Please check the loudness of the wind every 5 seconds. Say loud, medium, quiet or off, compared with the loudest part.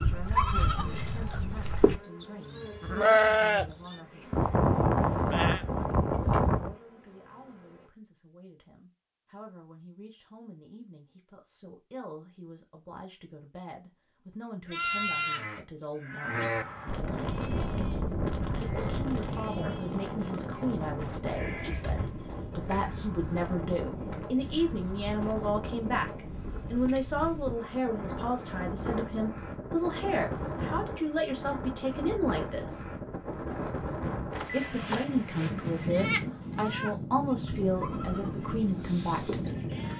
off, off, off, loud, loud, loud, loud, loud.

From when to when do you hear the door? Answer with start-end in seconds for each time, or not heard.
21.6-23.1.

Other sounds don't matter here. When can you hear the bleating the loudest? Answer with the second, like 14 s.
3 s.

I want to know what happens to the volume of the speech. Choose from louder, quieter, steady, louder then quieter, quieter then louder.
louder.